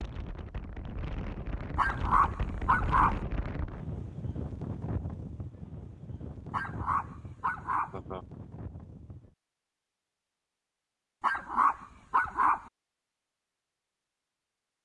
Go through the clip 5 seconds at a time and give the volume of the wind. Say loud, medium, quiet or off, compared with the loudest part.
loud, medium, off.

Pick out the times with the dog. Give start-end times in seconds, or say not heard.
1.8-3.2, 6.5-8.0, 11.2-12.7.